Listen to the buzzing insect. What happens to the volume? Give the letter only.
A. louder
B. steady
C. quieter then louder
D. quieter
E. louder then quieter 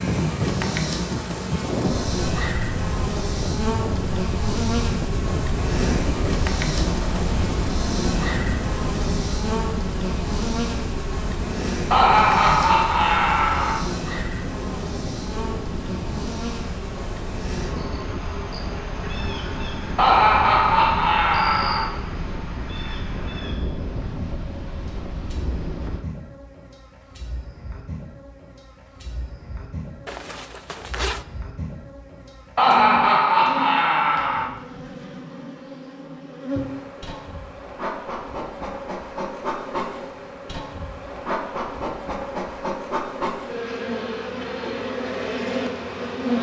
C.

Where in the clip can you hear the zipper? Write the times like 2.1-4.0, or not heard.
30.1-31.2.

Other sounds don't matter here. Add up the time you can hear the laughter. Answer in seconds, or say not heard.
6 s.